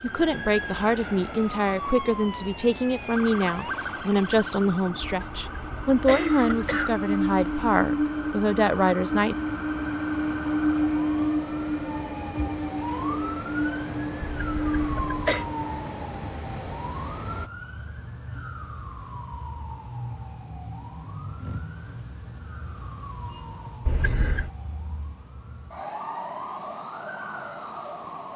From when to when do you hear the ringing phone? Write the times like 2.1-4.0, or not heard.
not heard.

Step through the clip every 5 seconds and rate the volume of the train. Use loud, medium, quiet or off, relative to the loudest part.
quiet, loud, loud, medium, off, off.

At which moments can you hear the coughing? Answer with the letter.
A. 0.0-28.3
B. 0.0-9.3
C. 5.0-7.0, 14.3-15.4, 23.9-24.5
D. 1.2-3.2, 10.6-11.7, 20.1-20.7
C.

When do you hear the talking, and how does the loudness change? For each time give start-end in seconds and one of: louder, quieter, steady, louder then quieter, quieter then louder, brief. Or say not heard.
0.0-9.3 steady.